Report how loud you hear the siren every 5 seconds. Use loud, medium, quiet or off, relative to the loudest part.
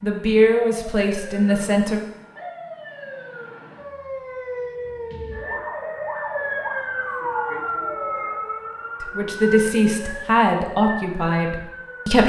medium, loud, medium.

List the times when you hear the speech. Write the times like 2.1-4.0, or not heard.
0.0-2.0, 9.0-12.2.